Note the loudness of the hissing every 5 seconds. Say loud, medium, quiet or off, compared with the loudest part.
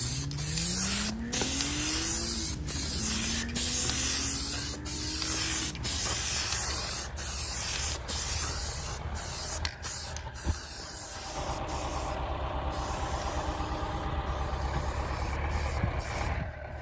loud, loud, quiet, quiet.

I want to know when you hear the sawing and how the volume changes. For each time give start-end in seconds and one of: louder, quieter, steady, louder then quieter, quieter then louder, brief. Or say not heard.
not heard.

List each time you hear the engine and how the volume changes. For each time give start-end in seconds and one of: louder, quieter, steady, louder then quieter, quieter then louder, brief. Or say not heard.
0.0-16.7 quieter then louder.